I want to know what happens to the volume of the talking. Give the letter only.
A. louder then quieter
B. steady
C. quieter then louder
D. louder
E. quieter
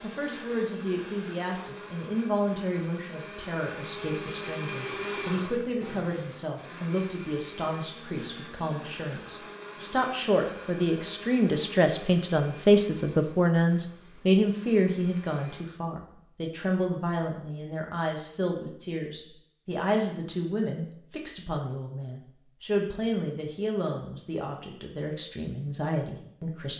A.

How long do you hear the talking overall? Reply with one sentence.
You can hear the talking for 27 seconds altogether.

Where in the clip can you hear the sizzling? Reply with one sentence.
You can't hear the sizzling here.